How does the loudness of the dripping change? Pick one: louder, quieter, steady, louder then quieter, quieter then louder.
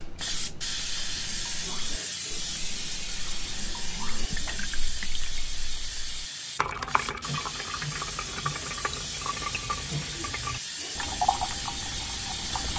louder.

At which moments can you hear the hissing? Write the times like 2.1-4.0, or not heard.
0.0-12.7.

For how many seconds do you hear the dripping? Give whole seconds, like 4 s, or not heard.
13 s.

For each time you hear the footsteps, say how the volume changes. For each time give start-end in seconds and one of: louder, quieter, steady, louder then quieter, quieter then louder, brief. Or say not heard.
not heard.